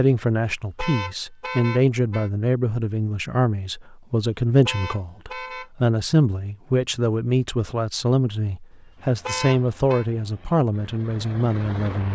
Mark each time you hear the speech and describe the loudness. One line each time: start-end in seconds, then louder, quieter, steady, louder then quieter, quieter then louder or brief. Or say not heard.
0.0-12.1 steady.